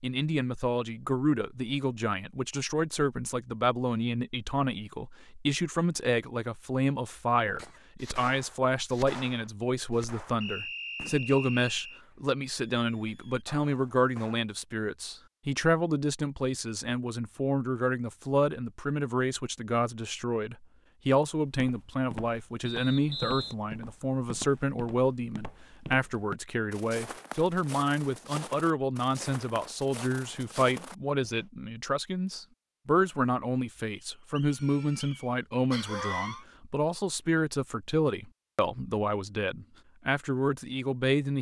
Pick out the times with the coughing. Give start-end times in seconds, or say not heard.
34.5-36.5.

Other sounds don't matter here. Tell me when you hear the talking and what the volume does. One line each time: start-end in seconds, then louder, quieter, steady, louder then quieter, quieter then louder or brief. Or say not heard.
0.0-41.3 steady.